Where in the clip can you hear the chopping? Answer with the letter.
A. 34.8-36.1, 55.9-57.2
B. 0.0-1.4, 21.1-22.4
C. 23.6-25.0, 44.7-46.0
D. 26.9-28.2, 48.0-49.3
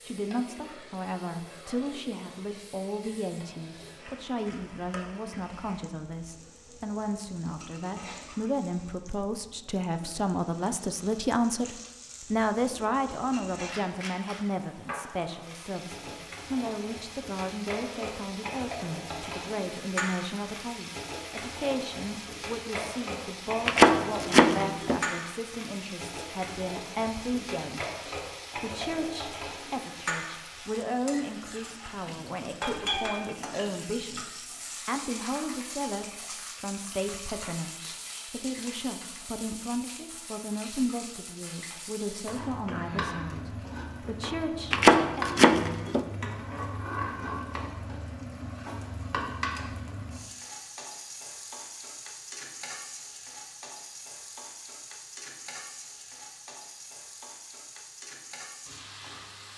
C.